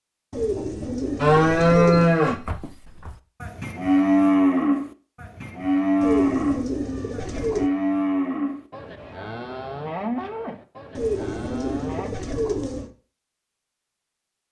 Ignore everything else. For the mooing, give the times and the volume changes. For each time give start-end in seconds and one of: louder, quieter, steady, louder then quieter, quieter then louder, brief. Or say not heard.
1.2-12.1 quieter.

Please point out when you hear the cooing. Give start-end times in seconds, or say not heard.
0.3-2.2, 6.0-7.7, 10.9-12.9.